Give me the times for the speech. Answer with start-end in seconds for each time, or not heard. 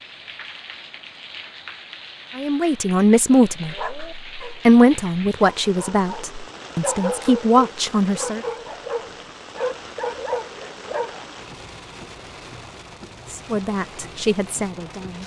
2.4-8.4, 13.3-15.2.